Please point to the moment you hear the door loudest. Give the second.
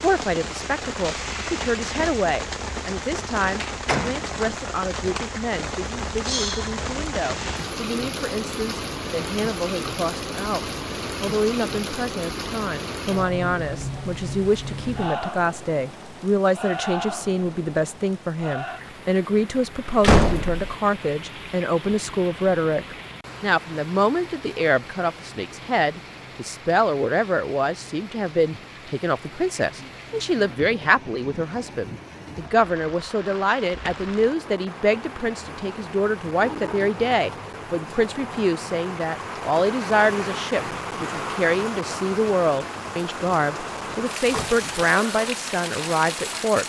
20 s.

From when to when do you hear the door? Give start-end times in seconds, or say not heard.
3.6-4.2, 20.0-20.6, 44.3-44.9.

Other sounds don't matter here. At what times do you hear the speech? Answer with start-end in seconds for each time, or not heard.
0.0-46.6.